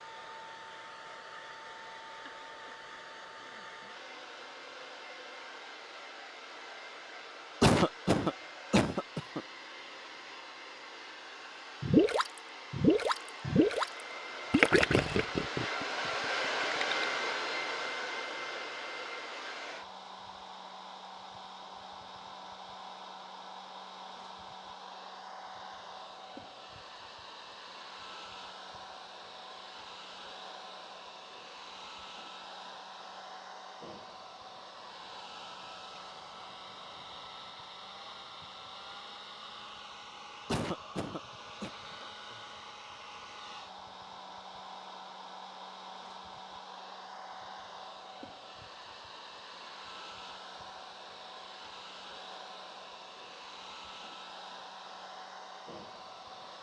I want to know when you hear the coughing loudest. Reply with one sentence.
The loudest moment of the coughing is at 8 seconds.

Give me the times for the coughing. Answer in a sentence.
You can hear the coughing from 7.6 to 9.4 s and from 40.5 to 41.7 s.